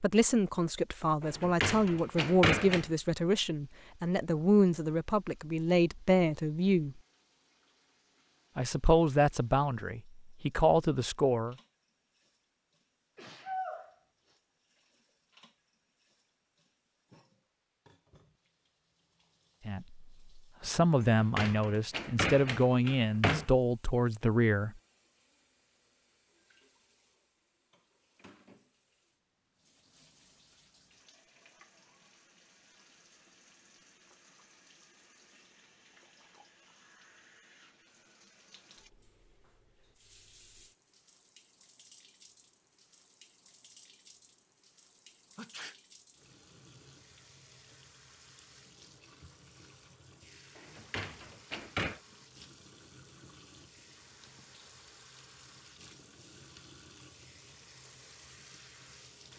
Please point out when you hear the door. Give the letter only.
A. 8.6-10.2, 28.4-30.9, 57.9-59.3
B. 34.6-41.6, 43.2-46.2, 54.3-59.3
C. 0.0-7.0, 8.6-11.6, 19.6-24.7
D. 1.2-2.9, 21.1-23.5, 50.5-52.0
D.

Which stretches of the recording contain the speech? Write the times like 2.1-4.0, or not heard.
0.0-7.0, 8.6-11.6, 19.6-24.7.